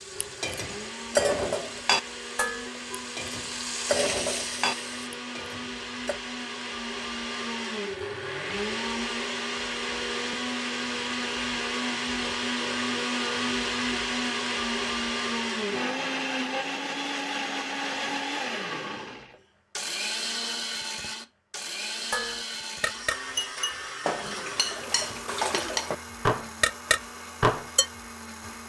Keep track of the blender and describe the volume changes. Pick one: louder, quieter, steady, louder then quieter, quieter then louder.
louder then quieter.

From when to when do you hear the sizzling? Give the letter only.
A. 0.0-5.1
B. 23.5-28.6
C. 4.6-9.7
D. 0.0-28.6
A.